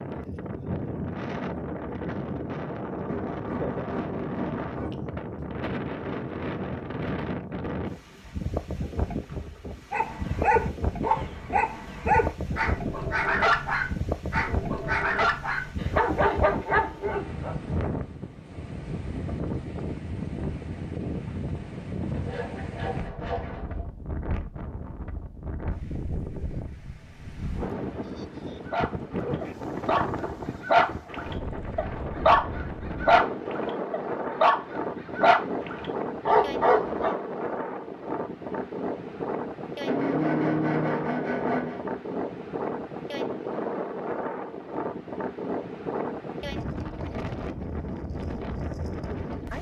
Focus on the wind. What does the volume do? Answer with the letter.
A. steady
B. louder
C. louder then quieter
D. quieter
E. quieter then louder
A.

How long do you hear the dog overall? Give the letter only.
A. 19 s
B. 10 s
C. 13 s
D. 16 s
D.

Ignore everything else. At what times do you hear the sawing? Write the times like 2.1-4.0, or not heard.
3.0-5.0, 22.1-23.9, 39.9-41.8.